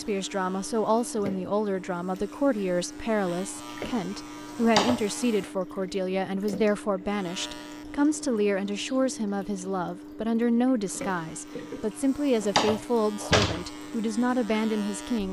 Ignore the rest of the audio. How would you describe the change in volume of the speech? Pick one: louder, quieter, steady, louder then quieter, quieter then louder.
steady.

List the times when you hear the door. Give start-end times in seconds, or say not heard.
4.6-5.0, 12.4-13.7.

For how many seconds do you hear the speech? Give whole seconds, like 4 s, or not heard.
15 s.